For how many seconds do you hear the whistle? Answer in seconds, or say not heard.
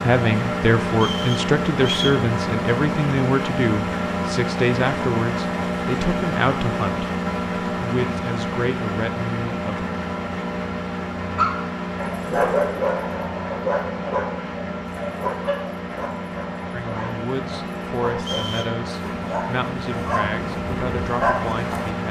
2 s.